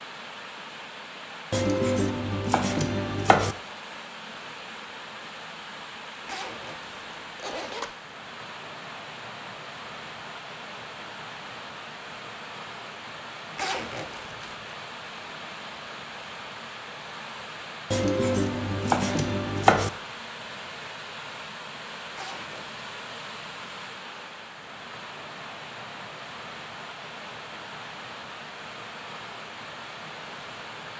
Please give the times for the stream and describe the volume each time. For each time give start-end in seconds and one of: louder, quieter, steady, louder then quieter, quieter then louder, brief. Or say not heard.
0.0-30.9 steady.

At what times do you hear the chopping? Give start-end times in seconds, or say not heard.
1.5-3.5, 17.9-19.9.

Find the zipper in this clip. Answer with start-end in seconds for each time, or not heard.
6.2-7.9, 13.6-14.6, 22.1-22.8.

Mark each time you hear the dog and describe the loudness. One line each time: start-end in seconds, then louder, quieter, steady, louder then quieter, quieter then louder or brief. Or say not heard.
not heard.